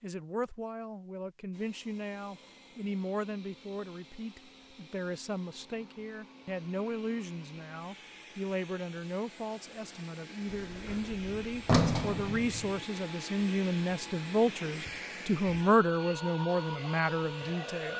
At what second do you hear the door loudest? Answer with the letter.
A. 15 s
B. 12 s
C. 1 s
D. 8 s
B.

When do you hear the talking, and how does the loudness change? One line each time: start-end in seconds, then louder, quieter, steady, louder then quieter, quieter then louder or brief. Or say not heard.
0.0-17.9 louder.